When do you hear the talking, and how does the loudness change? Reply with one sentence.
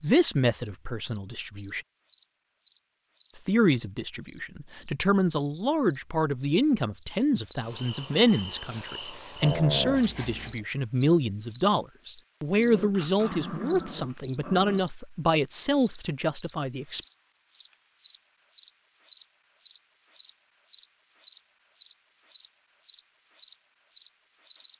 You can hear the talking briefly from 0.0 to 1.9 s; and from 3.4 to 17.0 s, at a steady volume.